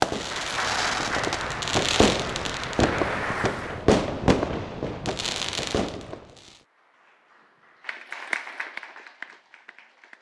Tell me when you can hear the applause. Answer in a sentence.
You can hear the applause from 0.1 to 3.9 s and from 6.5 to 10.1 s.